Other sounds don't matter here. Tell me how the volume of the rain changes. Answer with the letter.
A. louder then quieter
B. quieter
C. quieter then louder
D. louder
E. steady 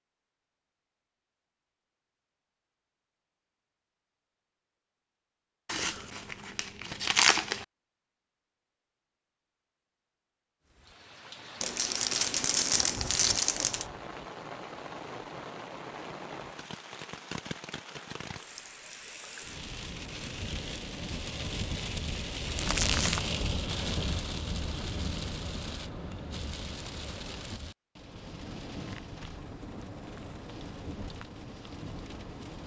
A.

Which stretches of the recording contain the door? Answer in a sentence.
The door can't be heard in this clip.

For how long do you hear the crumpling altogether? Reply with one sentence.
The crumpling can be heard for 5 seconds in total.